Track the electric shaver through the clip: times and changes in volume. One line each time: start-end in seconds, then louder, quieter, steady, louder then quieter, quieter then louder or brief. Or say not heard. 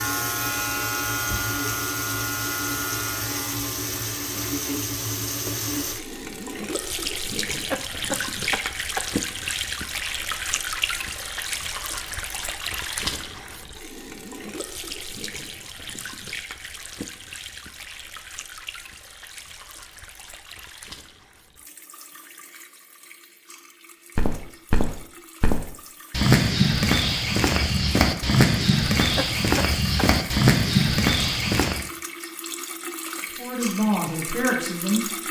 0.0-4.7 quieter.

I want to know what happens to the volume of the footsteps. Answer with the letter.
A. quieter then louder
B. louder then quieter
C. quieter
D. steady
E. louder
E.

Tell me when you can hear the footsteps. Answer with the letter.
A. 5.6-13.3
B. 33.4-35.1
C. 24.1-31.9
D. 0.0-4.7
C.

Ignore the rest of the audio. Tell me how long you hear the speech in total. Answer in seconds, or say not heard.
2 s.